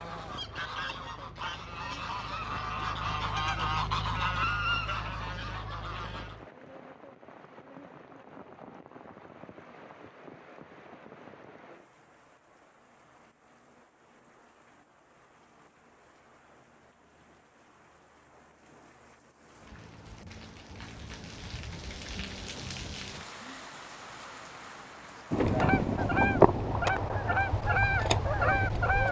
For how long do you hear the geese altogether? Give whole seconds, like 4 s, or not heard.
10 s.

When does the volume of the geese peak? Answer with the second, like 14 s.
26 s.